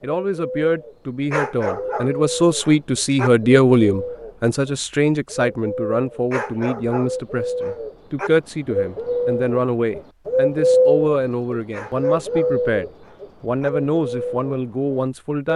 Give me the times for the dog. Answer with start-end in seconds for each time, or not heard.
1.3-3.3, 6.3-8.3, 11.7-13.7.